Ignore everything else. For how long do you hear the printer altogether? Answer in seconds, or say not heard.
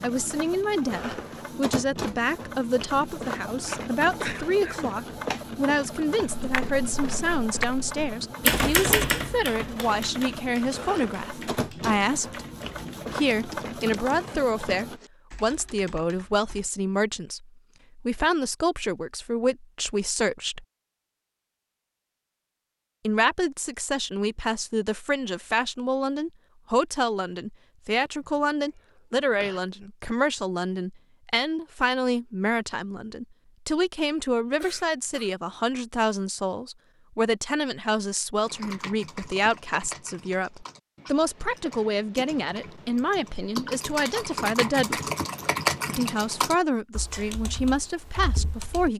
15 s.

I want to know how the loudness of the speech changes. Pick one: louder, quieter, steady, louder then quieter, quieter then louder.
steady.